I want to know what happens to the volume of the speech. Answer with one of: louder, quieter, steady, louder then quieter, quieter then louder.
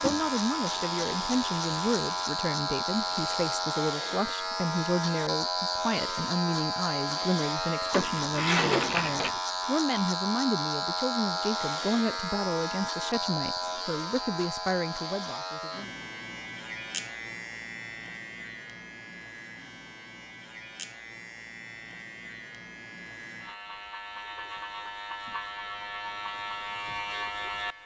steady.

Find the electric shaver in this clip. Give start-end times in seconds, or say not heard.
0.0-27.8.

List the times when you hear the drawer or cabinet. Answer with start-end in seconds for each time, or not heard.
7.9-9.4.